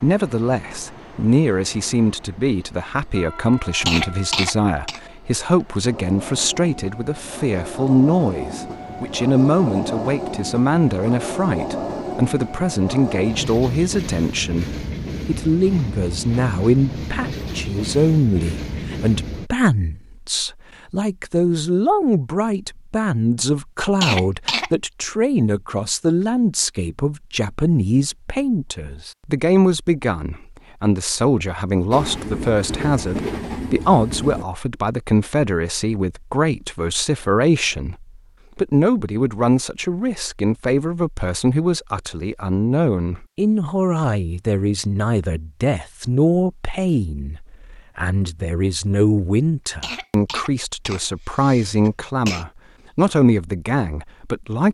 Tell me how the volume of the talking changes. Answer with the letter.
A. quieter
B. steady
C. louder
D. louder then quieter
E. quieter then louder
B.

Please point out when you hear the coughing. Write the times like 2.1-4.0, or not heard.
3.9-5.0, 24.0-24.7, 49.8-52.5.